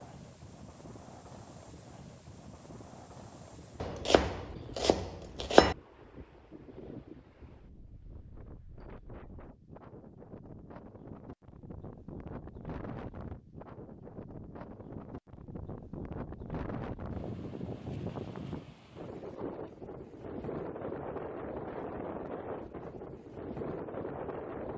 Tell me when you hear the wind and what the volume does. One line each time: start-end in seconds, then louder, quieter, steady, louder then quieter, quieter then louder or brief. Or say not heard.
0.0-24.7 louder.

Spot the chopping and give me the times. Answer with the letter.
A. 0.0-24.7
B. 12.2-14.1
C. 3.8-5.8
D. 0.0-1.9
C.